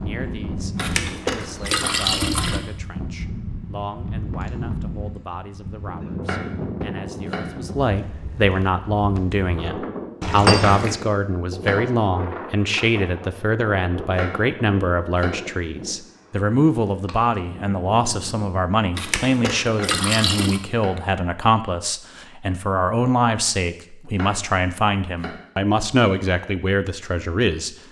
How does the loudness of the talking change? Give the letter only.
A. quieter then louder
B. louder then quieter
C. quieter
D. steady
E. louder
E.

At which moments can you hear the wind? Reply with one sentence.
You can hear the wind from 0.0 to 18.6 s.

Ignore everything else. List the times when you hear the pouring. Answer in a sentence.
The pouring can be heard from 0.8 to 2.6 s, from 10.2 to 10.9 s and from 18.9 to 20.6 s.